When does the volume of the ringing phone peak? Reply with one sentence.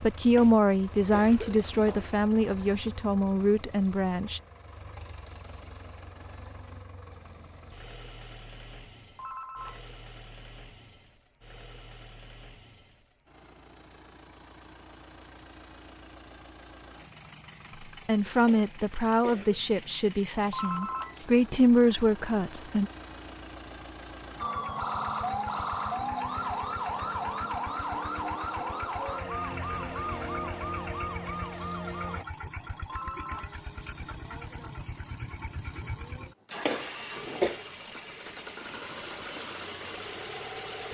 The loudest moment of the ringing phone is at 21 seconds.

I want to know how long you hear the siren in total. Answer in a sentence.
You can hear the siren for 8 seconds altogether.